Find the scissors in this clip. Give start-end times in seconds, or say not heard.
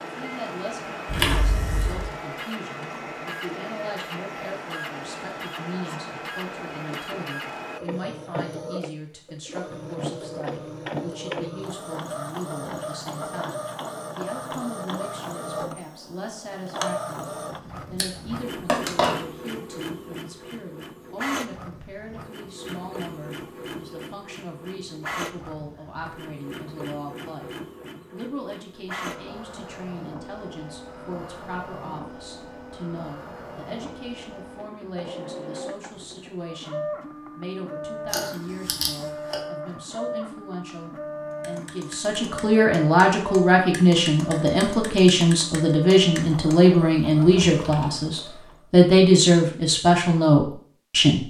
1.1-2.0, 17.9-19.1, 38.1-39.4.